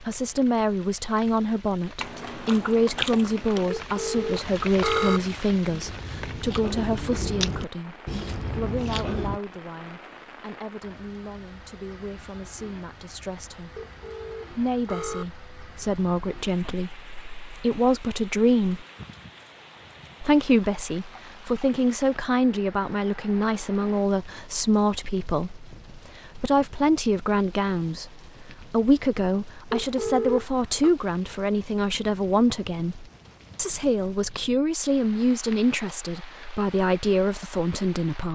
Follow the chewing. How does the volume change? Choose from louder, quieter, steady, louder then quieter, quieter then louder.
quieter then louder.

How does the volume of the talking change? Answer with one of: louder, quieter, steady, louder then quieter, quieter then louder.
quieter then louder.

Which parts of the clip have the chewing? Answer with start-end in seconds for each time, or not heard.
2.0-9.4.